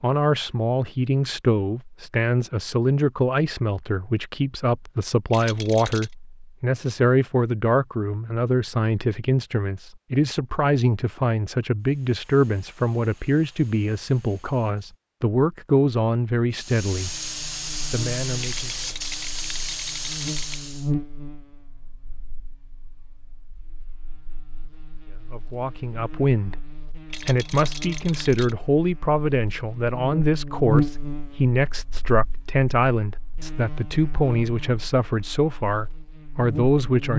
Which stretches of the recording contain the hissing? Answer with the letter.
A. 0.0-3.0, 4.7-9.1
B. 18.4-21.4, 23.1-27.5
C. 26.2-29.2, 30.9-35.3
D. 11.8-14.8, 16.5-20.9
D.